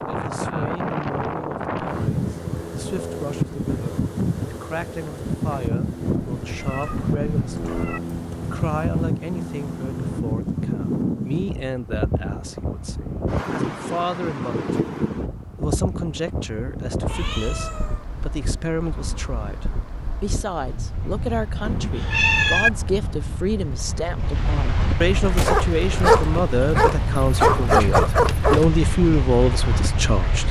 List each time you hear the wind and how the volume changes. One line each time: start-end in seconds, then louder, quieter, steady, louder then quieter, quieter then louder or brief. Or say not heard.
0.0-30.4 quieter then louder.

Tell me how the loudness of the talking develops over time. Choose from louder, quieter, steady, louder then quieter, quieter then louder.
louder.